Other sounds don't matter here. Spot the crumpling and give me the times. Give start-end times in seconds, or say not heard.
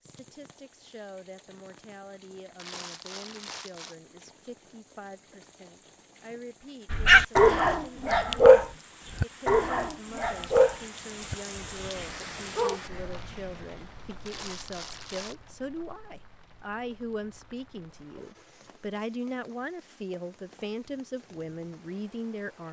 2.5-4.0, 14.2-15.3.